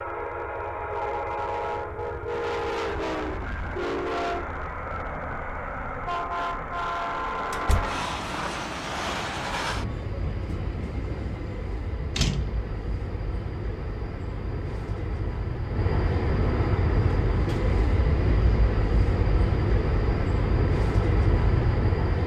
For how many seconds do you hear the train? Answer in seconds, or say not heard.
22 s.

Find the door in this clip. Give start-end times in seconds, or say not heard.
7.5-8.0, 12.2-12.7.